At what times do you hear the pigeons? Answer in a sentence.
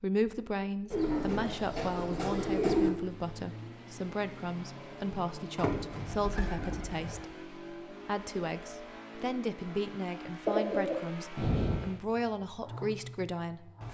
You can hear the pigeons from 0.9 to 2.9 s, from 5.5 to 7.2 s and from 10.4 to 11.9 s.